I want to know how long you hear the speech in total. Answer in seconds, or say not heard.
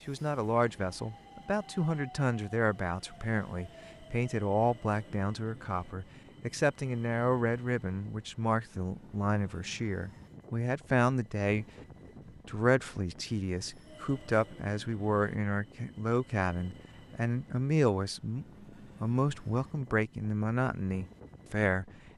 21 s.